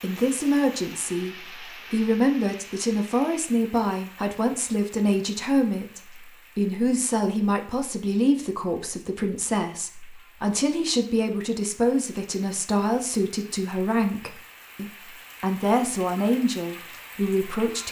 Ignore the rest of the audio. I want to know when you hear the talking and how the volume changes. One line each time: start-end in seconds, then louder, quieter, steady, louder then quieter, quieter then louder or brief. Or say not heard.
0.0-17.8 steady.